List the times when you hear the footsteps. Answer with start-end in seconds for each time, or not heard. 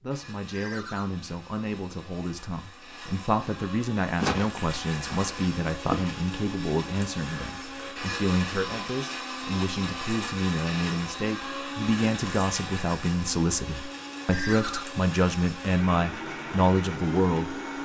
4.2-6.3.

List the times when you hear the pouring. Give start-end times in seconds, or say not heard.
not heard.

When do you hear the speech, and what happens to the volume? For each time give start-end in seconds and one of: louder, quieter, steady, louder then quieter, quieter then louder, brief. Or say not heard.
0.0-17.8 louder.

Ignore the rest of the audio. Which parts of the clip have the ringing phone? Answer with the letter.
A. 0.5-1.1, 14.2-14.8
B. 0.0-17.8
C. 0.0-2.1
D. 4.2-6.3
A.